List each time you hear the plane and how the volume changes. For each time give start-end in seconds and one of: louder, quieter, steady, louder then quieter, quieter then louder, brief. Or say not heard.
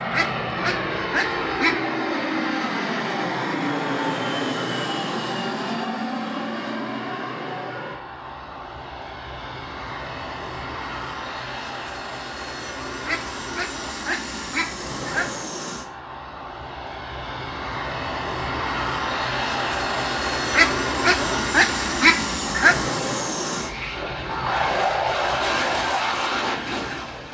0.0-27.2 quieter then louder.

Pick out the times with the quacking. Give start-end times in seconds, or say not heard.
0.1-1.8, 13.1-15.4, 20.5-22.9.